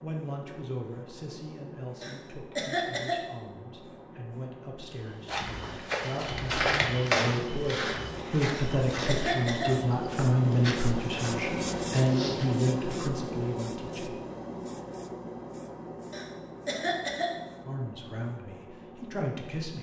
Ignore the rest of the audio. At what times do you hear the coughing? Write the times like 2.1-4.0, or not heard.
2.0-3.1, 8.5-9.7, 16.1-17.3.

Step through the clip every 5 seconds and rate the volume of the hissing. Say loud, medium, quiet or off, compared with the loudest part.
quiet, medium, loud, medium.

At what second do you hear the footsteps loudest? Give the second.
7 s.